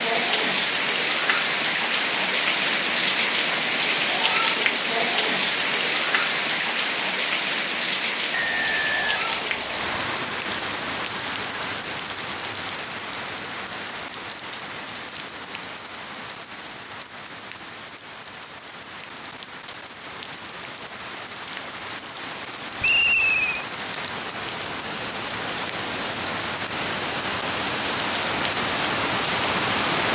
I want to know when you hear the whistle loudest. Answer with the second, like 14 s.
23 s.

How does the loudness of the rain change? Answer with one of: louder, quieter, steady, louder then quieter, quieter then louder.
quieter then louder.